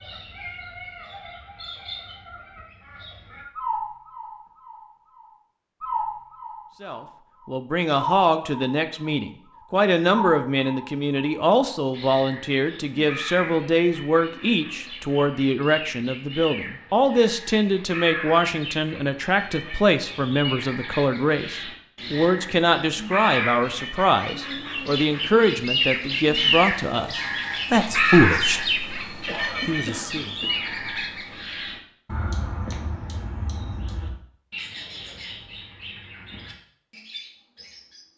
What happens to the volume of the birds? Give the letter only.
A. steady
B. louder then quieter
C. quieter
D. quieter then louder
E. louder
B.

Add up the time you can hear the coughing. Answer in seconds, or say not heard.
2 s.